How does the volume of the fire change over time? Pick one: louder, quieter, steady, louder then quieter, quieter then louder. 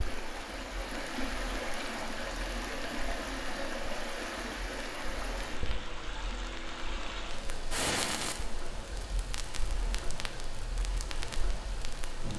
louder then quieter.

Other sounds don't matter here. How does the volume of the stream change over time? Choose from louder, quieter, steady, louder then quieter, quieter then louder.
quieter.